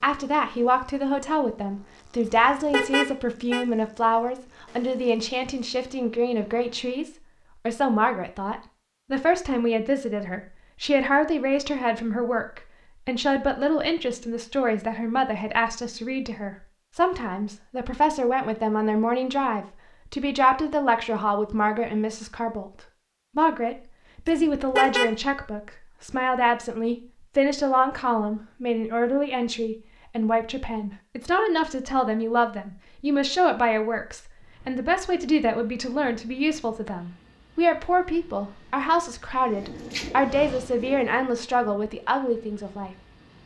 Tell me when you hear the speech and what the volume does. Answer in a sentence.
The speech can be heard from 0.0 to 22.7 s, at a steady volume; and from 23.4 to 43.4 s, at a steady volume.